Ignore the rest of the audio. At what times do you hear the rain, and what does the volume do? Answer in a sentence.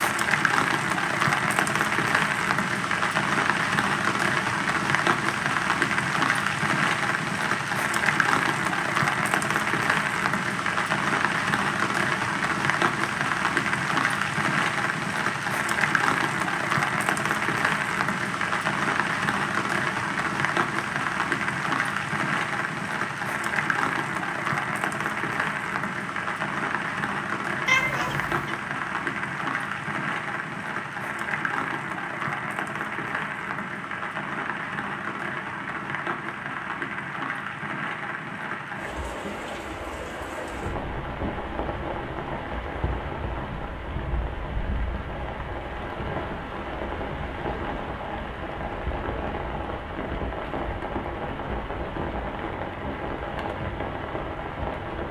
You can hear the rain from 0.0 to 55.0 s, getting quieter.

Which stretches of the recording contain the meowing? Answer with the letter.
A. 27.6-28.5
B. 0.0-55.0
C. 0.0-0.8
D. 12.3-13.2
A.